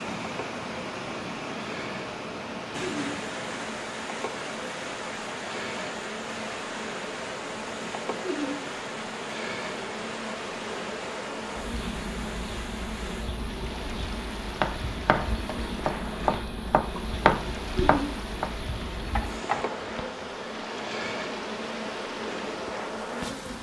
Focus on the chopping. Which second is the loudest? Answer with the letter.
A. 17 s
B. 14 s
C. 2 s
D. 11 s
A.